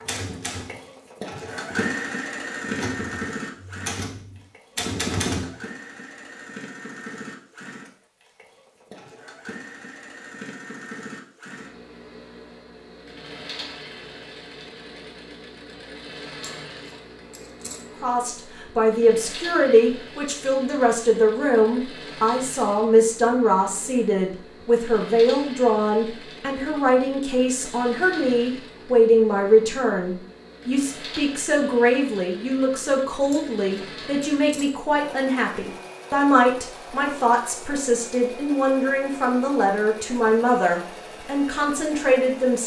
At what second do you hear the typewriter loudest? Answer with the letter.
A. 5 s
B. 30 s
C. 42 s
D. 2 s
A.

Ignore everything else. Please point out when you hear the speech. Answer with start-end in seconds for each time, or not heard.
18.0-42.6.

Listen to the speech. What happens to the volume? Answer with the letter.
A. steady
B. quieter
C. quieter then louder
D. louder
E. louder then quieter
A.